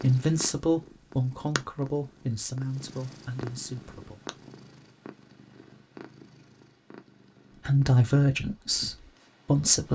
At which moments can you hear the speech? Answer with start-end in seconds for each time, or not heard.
0.0-4.3, 7.5-9.9.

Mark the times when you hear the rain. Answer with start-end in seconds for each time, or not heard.
not heard.